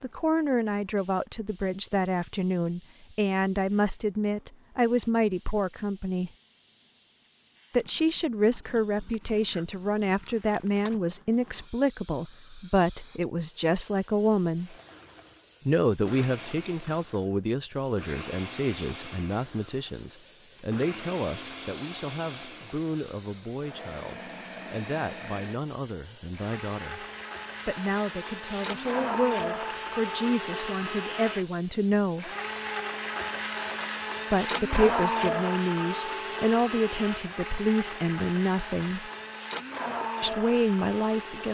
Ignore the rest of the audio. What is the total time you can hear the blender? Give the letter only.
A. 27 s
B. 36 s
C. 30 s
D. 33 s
A.